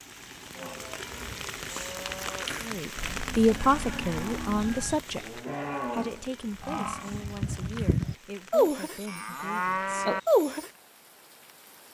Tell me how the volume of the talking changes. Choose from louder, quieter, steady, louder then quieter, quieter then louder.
quieter.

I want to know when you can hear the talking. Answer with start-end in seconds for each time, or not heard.
2.6-10.1.